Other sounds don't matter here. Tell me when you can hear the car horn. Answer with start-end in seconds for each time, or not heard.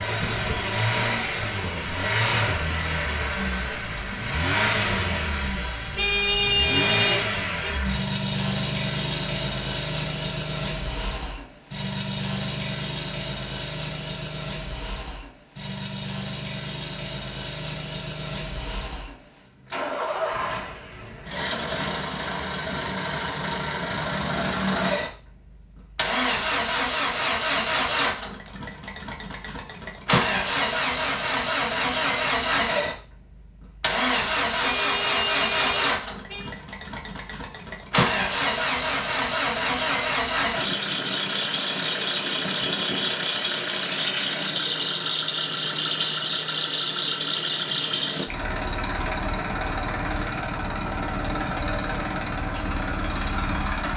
6.0-7.7, 34.6-36.5.